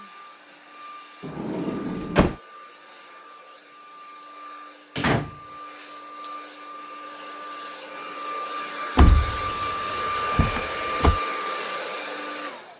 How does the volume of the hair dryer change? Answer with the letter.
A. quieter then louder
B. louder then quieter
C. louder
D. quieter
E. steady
C.